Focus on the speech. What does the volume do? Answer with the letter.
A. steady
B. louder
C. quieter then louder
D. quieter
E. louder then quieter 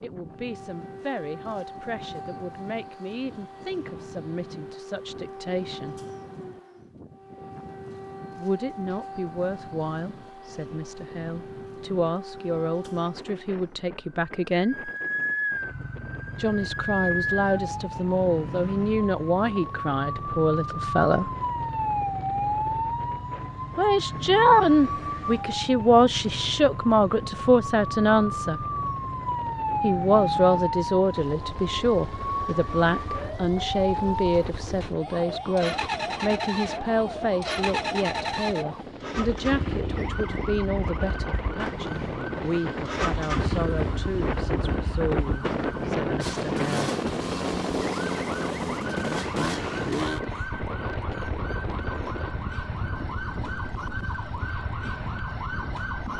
E.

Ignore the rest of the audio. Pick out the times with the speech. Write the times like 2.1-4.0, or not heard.
0.0-6.0, 8.3-14.9, 16.4-21.3, 23.8-28.6, 29.8-47.0.